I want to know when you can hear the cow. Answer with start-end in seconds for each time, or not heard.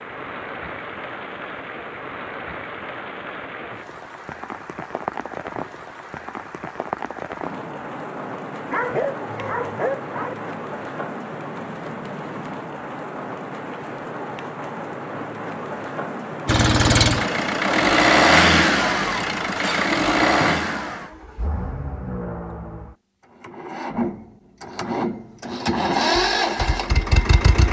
not heard.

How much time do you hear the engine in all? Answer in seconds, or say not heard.
11 s.